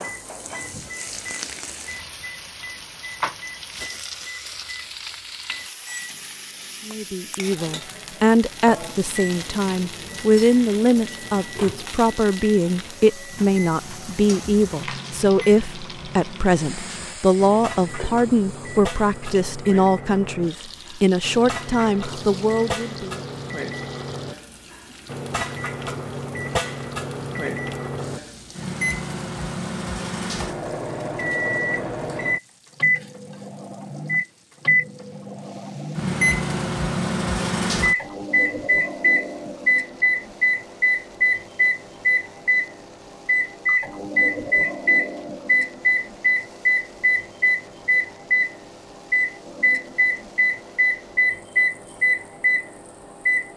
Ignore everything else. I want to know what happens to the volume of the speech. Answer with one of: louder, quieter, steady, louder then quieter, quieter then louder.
steady.